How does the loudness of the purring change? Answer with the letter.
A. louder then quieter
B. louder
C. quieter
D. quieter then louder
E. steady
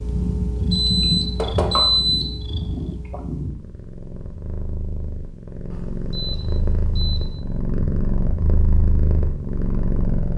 D.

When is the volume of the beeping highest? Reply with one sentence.
The volume of the beeping peaks at 2 seconds.